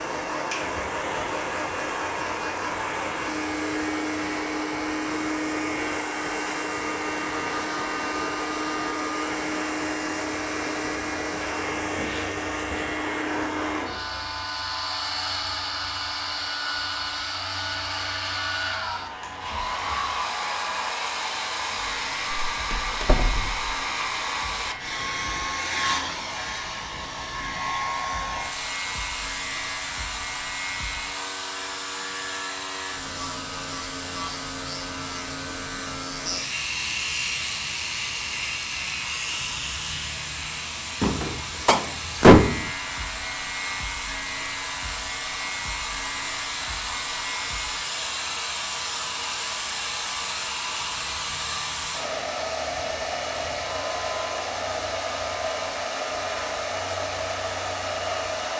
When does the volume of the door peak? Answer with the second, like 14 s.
42 s.